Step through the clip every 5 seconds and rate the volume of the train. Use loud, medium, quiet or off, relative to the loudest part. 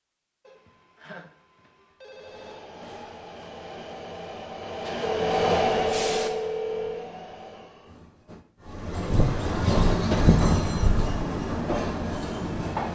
quiet, loud, loud.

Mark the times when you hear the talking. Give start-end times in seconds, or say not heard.
not heard.